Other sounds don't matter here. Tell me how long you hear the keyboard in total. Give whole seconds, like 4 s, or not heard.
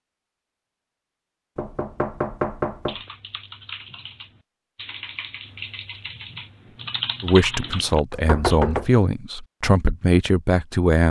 6 s.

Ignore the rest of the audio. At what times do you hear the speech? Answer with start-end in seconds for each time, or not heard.
7.2-11.0.